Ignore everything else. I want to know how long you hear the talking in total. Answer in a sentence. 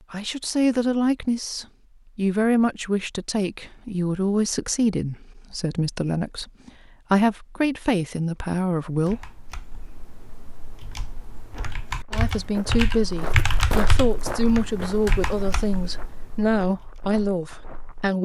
You can hear the talking for 15 seconds altogether.